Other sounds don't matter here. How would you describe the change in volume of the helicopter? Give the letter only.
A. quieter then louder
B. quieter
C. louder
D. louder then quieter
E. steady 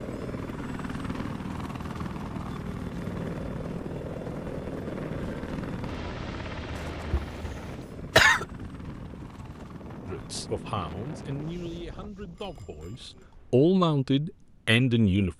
B.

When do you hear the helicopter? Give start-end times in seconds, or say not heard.
0.0-11.8.